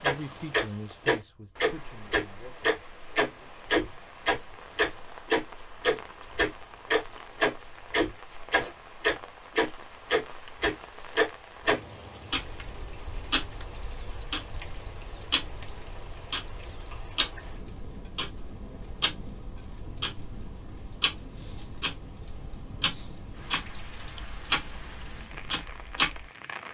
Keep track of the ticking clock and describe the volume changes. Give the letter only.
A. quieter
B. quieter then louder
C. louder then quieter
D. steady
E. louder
A.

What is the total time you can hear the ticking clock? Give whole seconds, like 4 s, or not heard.
26 s.